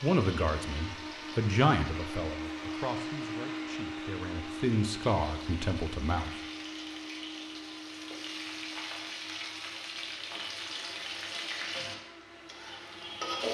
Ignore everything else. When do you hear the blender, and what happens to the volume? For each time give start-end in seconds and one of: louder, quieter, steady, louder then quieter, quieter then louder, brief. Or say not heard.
0.0-13.3 quieter.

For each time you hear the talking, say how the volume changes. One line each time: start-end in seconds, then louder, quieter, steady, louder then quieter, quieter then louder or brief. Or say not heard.
0.0-6.3 quieter then louder.